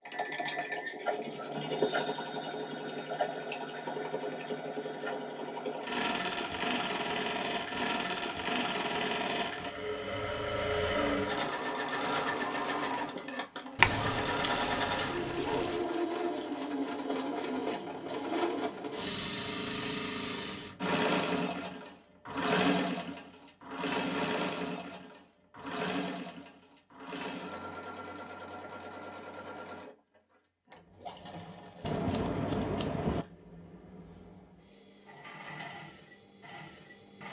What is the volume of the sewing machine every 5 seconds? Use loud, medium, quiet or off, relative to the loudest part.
loud, loud, loud, loud, loud, medium, quiet, quiet.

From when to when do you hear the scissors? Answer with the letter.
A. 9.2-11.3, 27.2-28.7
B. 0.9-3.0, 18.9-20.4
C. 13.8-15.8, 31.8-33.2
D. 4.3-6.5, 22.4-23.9
C.